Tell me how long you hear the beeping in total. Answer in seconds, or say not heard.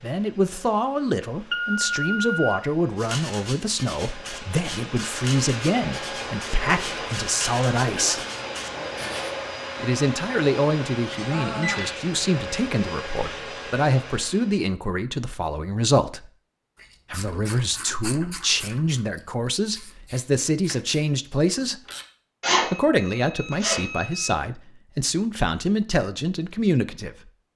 4 s.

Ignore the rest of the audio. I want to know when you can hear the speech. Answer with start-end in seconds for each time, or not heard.
0.0-8.2, 9.8-16.3, 17.1-21.8, 22.6-27.2.